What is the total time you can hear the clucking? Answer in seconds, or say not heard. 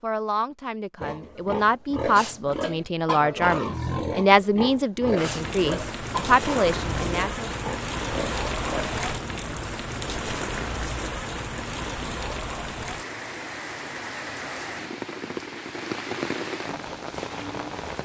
not heard.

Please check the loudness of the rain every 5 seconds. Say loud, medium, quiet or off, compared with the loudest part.
off, loud, loud, loud.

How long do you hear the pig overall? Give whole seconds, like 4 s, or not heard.
8 s.